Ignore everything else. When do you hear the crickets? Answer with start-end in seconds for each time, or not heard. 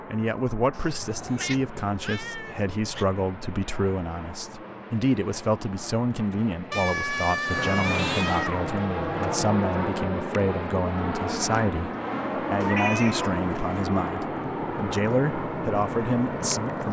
not heard.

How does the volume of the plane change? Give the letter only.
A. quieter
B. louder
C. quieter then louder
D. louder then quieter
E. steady
B.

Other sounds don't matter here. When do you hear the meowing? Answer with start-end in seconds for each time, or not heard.
0.8-3.0, 6.7-8.7, 12.6-13.8.